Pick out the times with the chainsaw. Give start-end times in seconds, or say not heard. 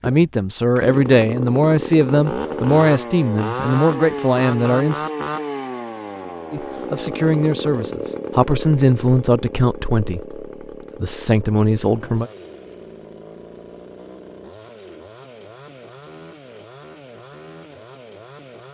0.0-18.6.